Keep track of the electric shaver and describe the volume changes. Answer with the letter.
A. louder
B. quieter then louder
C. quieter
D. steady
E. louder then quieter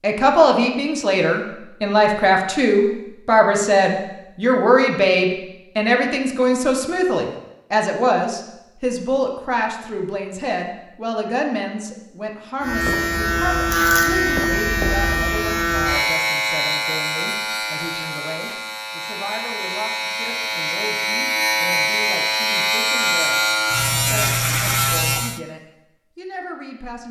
B.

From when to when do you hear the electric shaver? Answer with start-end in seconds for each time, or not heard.
12.6-25.4.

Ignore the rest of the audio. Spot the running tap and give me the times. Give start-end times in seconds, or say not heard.
not heard.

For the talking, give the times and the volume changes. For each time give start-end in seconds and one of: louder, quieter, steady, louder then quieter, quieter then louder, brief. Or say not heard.
0.0-23.4 quieter
24.1-27.0 brief.